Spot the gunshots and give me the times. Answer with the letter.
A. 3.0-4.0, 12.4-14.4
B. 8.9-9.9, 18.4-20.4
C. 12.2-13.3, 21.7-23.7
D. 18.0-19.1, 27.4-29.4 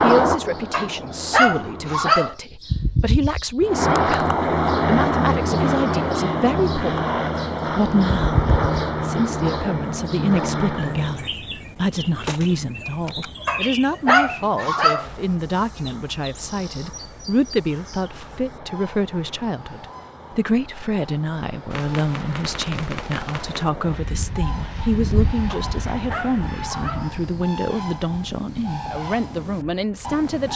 C.